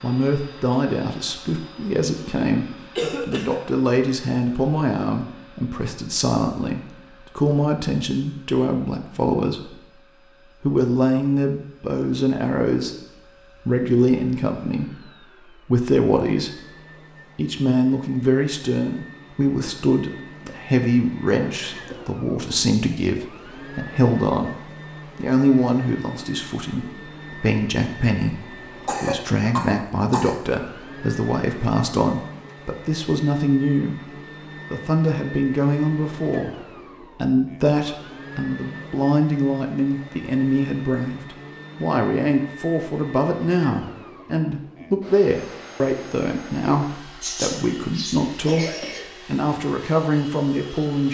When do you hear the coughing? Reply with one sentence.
The coughing can be heard from 3.0 to 3.6 s, from 28.4 to 30.4 s and from 47.2 to 49.1 s.